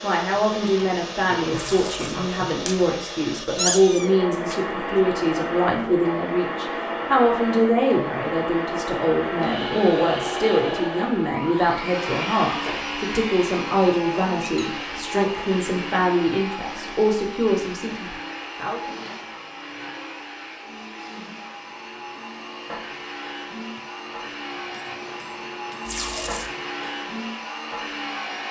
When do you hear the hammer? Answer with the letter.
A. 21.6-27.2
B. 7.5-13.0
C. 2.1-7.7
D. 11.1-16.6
A.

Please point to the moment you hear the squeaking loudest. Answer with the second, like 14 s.
4 s.